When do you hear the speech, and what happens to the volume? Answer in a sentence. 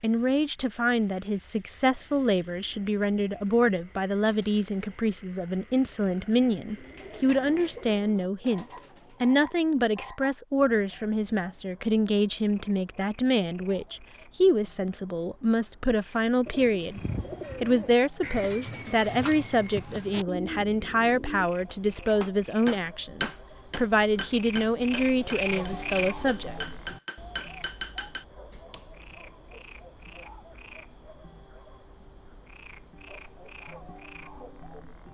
The speech can be heard from 0.0 to 17.0 s, at a steady volume; and from 17.6 to 26.6 s, at a steady volume.